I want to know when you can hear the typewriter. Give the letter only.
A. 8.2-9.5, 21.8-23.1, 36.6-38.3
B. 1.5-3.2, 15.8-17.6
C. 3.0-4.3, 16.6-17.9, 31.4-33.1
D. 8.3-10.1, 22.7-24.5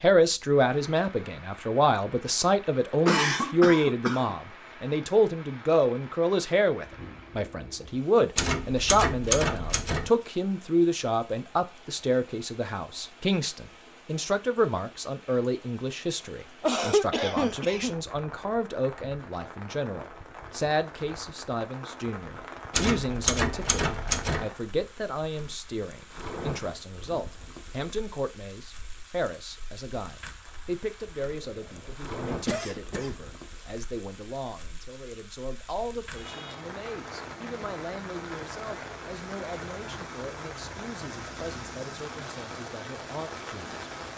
D.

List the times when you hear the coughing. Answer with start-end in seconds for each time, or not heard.
3.0-4.3, 16.6-17.9, 31.4-33.1.